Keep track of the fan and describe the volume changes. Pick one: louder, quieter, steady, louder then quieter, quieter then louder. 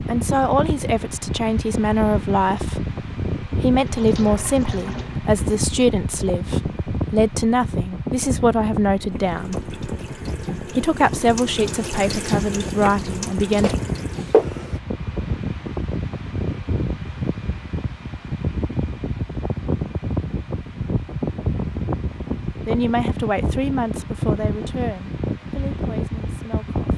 steady.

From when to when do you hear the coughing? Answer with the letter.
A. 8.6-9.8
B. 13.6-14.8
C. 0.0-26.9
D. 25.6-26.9
B.